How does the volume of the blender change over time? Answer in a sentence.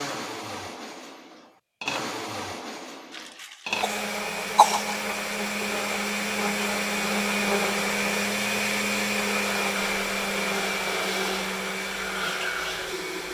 The loudness of the blender goes up.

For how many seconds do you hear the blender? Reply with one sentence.
The blender can be heard for 13 seconds in total.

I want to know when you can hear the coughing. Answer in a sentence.
You can hear the coughing from 3.1 to 5.0 s.